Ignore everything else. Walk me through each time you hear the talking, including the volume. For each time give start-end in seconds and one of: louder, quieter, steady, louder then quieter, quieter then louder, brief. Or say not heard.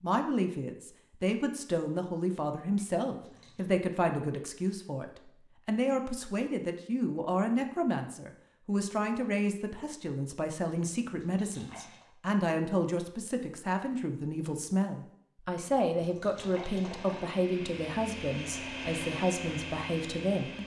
0.0-20.6 steady.